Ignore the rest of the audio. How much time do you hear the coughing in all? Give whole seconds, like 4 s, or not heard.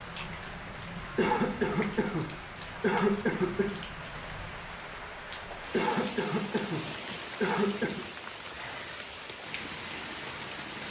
5 s.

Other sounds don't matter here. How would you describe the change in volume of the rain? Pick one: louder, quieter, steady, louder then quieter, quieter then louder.
steady.